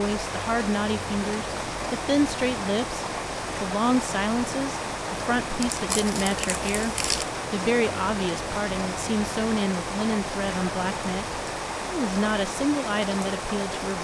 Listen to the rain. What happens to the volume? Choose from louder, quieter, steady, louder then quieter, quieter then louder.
steady.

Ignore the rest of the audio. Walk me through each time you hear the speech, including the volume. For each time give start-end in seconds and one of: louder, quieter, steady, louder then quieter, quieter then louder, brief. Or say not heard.
0.0-13.9 steady.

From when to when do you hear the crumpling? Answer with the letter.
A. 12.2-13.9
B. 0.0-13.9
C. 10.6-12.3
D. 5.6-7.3
D.